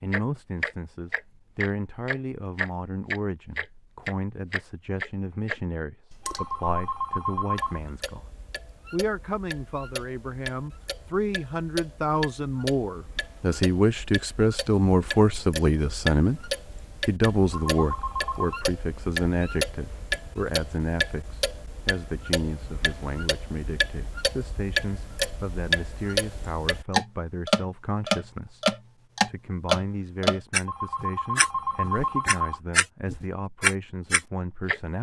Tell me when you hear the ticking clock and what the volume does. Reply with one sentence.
You can hear the ticking clock from 0.1 to 34.8 s, getting quieter then louder.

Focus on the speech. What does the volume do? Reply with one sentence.
The loudness of the speech goes up, then down.